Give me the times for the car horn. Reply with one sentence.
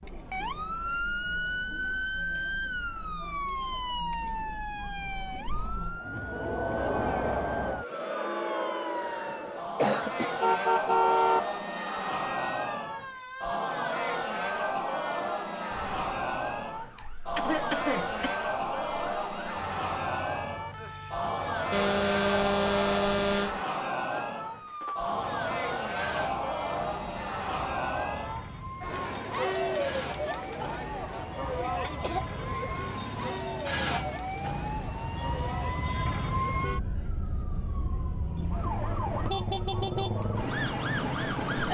The car horn can be heard from 10.2 to 11.4 s and from 21.7 to 23.6 s.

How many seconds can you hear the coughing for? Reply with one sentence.
You can hear the coughing for 4 seconds altogether.